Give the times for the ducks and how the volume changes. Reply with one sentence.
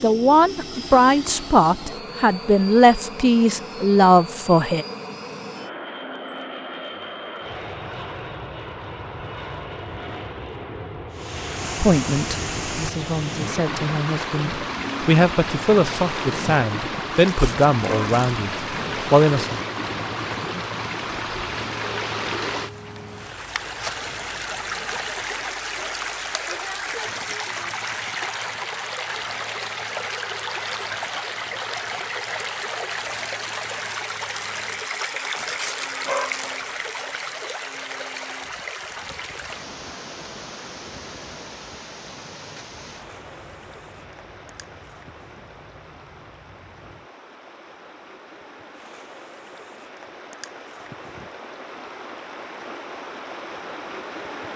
You can't hear the ducks here.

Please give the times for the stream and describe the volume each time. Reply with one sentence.
You can hear the stream from 11.1 to 54.5 s, getting quieter.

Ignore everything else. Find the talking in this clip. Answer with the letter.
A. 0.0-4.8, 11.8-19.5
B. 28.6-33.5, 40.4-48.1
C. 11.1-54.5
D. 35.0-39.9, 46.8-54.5
A.